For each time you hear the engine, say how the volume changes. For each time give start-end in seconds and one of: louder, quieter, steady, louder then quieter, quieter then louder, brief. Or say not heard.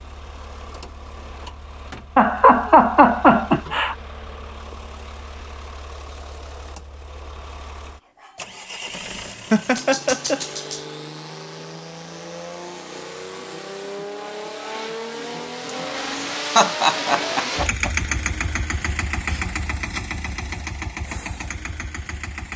0.0-22.5 louder.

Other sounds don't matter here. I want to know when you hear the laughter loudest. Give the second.
3 s.